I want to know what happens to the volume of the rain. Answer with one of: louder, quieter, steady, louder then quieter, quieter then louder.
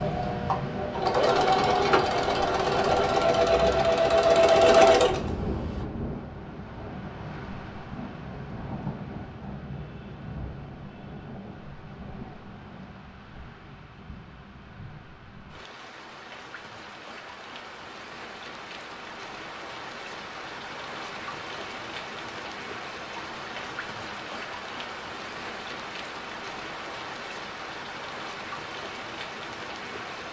quieter then louder.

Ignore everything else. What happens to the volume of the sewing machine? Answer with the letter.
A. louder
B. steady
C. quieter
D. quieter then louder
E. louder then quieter
A.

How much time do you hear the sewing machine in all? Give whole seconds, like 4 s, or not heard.
6 s.